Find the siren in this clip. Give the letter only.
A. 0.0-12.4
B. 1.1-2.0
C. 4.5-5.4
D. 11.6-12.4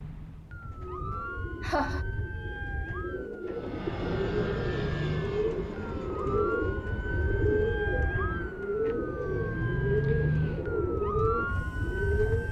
A.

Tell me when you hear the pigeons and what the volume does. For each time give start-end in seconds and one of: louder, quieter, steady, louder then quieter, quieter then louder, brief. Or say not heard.
0.4-12.4 louder.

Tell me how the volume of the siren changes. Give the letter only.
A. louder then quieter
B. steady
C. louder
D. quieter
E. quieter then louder
C.